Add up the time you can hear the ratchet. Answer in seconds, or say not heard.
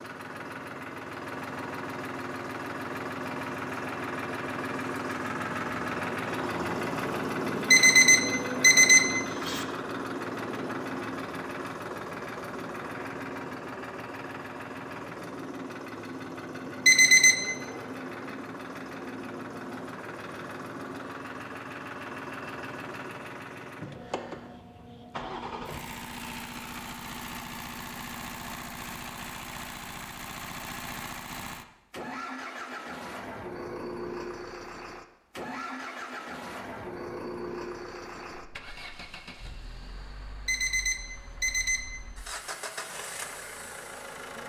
not heard.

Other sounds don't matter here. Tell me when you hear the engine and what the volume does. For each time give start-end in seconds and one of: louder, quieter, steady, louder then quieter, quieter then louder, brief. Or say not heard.
0.0-44.4 quieter.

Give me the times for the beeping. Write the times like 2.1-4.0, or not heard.
7.7-9.7, 16.9-17.4, 40.5-41.9.